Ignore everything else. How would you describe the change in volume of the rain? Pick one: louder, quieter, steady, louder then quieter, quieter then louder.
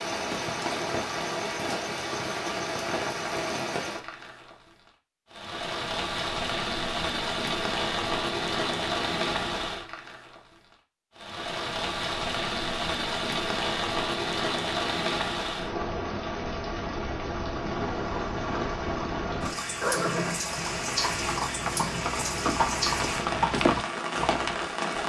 steady.